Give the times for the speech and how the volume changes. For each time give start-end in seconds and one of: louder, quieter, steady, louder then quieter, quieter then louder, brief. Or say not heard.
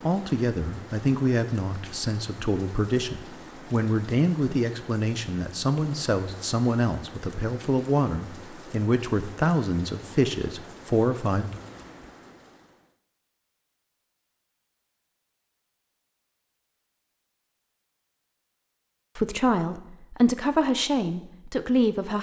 0.0-11.5 steady
19.1-22.1 brief.